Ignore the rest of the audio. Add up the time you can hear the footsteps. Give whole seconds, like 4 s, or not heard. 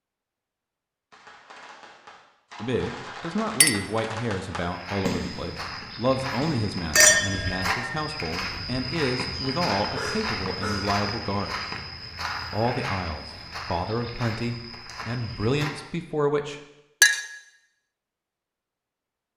11 s.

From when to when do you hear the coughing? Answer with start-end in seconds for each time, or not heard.
9.9-11.0.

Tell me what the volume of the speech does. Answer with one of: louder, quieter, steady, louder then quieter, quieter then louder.
steady.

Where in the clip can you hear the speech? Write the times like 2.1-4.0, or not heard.
2.6-11.6, 12.5-16.6.